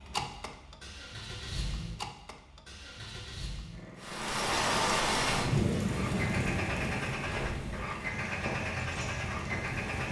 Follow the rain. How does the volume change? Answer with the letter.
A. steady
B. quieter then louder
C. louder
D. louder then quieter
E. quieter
E.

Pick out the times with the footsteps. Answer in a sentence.
The footsteps can be heard from 7.2 to 10.0 s.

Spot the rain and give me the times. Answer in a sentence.
The rain can be heard from 4.0 to 10.0 s.